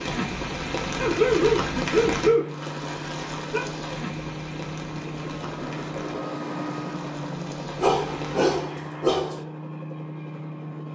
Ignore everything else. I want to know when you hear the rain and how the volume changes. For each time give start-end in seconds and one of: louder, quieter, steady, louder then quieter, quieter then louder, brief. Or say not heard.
0.0-8.5 quieter.